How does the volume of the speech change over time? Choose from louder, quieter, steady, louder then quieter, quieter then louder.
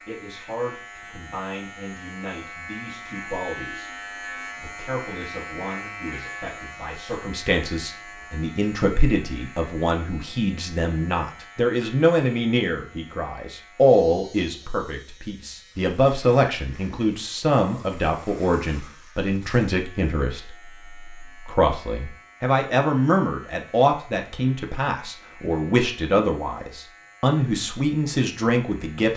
louder.